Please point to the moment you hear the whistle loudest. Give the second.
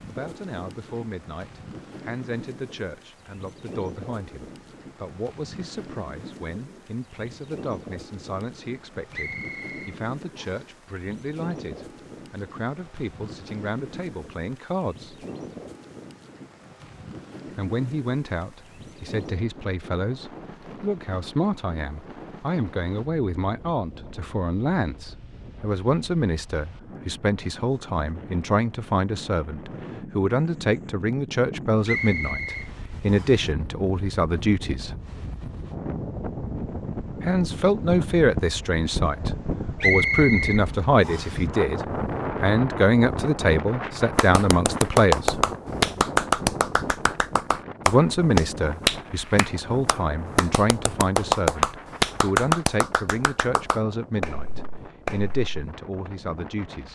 40 s.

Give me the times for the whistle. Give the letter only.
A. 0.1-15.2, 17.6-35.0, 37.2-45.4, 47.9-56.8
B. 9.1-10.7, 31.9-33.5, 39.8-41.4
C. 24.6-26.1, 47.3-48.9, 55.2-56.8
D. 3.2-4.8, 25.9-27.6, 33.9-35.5
B.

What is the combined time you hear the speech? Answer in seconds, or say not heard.
50 s.